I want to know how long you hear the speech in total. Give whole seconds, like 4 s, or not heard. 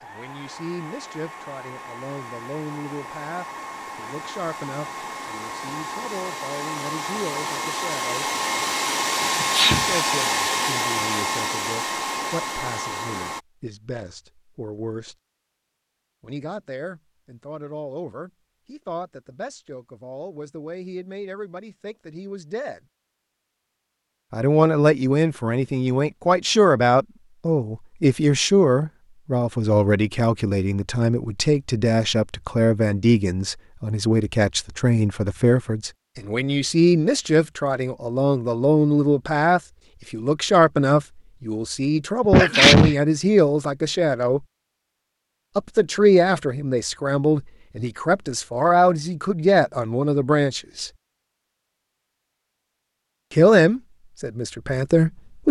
48 s.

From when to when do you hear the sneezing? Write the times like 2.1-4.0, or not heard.
9.4-9.8, 42.2-43.0.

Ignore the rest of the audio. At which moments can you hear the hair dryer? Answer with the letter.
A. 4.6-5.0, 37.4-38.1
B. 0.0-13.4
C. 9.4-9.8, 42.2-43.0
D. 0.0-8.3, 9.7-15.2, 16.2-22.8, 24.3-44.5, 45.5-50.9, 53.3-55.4
B.